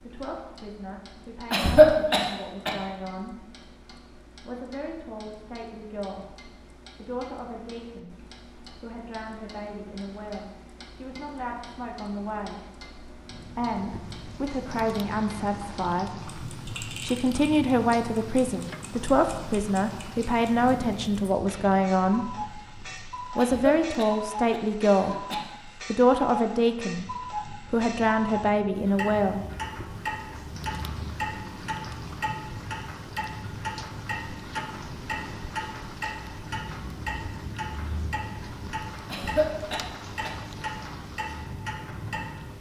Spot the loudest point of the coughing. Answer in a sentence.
The volume of the coughing peaks at 2 seconds.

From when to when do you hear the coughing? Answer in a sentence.
You can hear the coughing from 1.5 to 2.7 s, from 23.4 to 25.4 s and from 39.1 to 40.3 s.